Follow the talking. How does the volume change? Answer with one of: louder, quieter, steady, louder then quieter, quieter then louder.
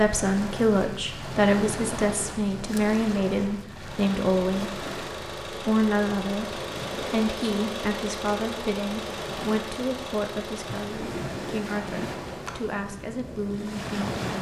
quieter.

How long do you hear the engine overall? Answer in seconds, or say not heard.
7 s.